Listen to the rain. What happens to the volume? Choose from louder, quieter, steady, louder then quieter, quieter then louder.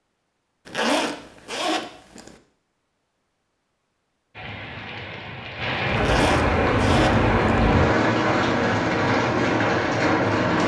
louder.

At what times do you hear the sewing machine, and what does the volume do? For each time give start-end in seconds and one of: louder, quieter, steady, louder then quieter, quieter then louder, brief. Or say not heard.
not heard.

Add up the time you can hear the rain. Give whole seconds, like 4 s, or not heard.
6 s.